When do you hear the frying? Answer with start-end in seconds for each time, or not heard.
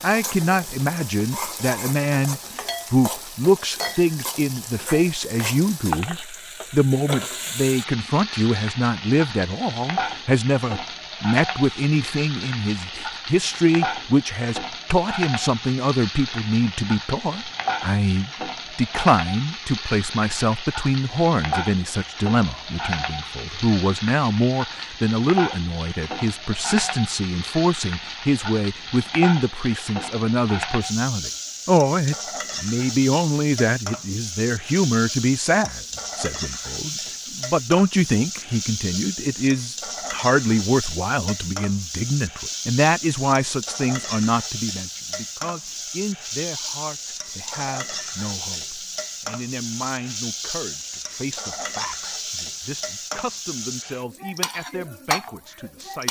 0.0-56.0.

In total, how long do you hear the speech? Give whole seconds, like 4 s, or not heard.
56 s.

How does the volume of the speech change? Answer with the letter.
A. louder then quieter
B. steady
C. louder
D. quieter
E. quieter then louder
D.